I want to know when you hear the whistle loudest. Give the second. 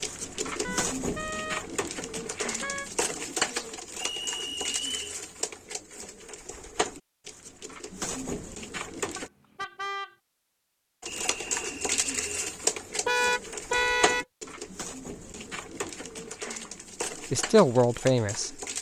5 s.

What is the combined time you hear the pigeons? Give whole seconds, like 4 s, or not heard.
17 s.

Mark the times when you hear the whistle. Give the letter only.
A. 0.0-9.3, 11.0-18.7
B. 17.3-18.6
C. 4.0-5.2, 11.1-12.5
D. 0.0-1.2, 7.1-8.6
C.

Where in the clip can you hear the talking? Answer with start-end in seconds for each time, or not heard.
17.3-18.6.